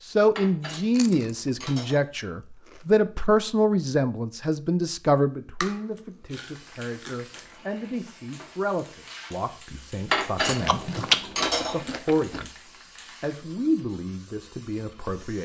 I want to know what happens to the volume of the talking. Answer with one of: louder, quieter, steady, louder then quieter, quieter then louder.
quieter.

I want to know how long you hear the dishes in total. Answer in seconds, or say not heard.
3 s.